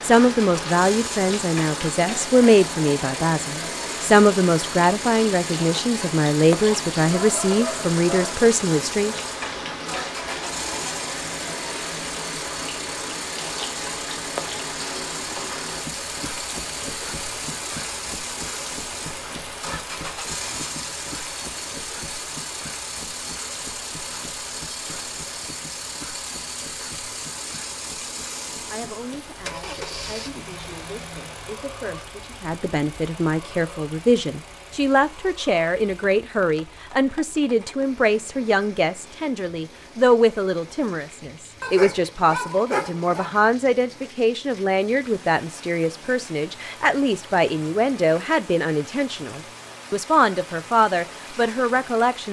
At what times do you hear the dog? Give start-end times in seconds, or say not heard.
6.7-8.4, 41.6-43.3.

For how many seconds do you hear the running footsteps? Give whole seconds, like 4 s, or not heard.
not heard.